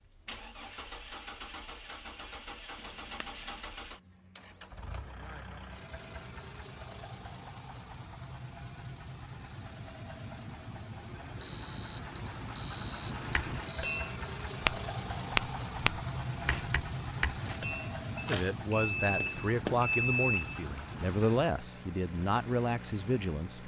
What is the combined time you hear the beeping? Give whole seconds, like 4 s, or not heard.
6 s.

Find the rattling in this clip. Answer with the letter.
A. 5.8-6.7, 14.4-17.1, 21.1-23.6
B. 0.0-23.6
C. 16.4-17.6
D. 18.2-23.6
C.